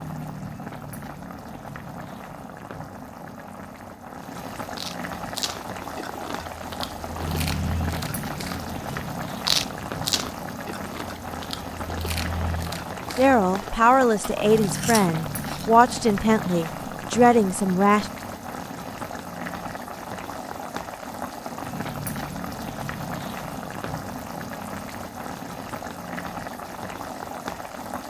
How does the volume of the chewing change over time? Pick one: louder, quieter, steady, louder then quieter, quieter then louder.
louder then quieter.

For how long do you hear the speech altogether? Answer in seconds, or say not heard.
5 s.